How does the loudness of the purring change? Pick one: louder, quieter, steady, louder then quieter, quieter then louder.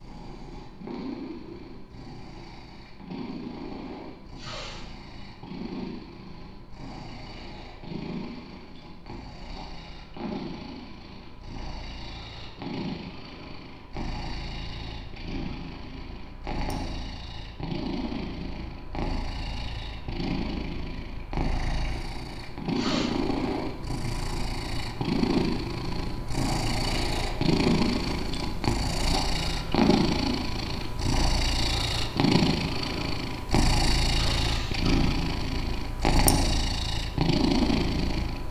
louder.